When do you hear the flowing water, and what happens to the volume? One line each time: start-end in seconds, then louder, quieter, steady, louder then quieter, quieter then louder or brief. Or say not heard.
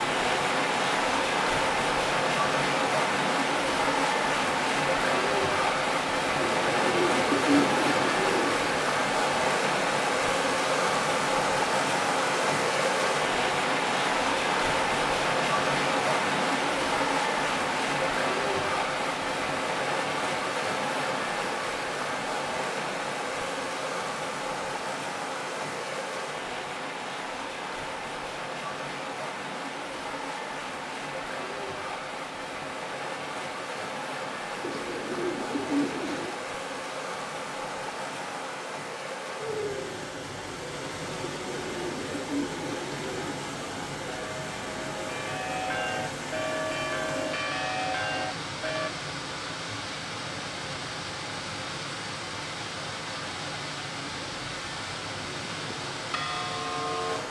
0.0-57.2 quieter.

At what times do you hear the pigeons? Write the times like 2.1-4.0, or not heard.
6.4-8.8, 34.6-36.4, 41.2-43.5.